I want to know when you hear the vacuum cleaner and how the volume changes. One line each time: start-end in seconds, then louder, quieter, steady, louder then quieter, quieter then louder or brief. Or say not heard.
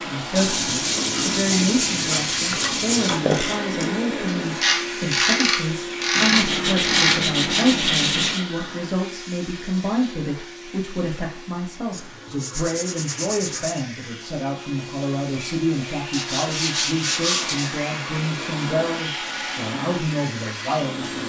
0.0-21.2 quieter then louder.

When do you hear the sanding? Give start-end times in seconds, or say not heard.
0.3-3.2, 6.2-8.4, 11.9-13.8, 16.1-17.7.